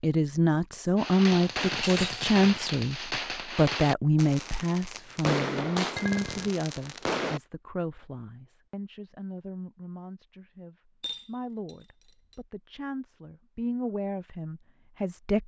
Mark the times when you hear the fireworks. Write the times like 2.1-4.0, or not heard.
0.9-7.4.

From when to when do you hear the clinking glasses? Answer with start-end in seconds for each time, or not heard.
1.7-2.2, 6.0-6.5, 11.0-12.3.